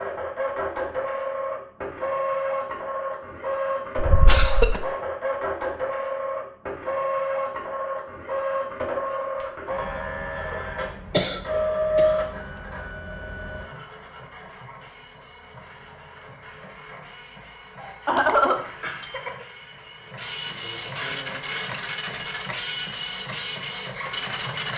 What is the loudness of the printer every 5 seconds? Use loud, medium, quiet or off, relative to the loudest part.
loud, loud, loud, quiet, loud.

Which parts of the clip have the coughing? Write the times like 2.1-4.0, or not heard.
4.0-4.8, 11.1-12.2, 17.8-19.4.